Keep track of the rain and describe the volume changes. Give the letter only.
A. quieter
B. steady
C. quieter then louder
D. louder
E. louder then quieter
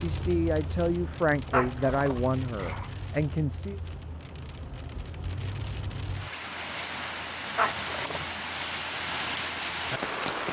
D.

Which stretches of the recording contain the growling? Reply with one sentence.
The growling can be heard from 1.5 to 2.9 s and from 7.5 to 8.2 s.